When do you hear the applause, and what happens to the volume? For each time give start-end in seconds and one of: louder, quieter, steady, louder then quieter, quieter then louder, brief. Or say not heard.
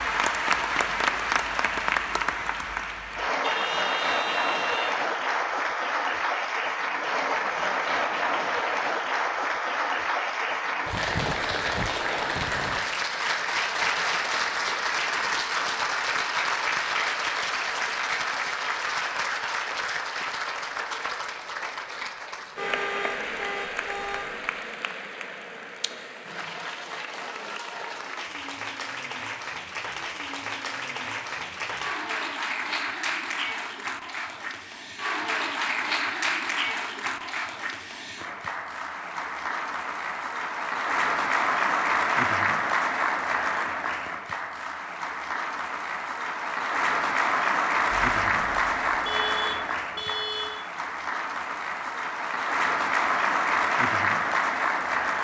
0.0-55.2 quieter then louder.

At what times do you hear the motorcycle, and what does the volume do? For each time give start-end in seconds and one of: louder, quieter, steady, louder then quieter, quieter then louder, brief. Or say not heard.
not heard.